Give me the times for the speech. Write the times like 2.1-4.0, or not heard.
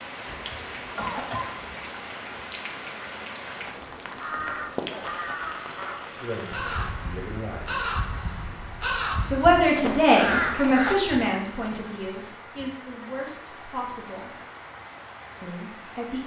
6.2-7.8, 9.3-14.3, 15.4-16.2.